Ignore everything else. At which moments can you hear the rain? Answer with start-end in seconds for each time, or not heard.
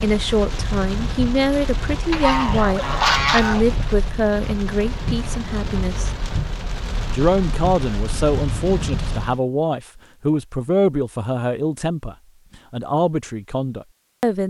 0.0-9.4.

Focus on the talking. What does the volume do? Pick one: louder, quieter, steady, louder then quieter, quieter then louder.
steady.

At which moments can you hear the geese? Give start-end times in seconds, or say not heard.
2.1-3.6.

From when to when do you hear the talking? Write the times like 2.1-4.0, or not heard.
0.0-6.1, 7.1-14.4.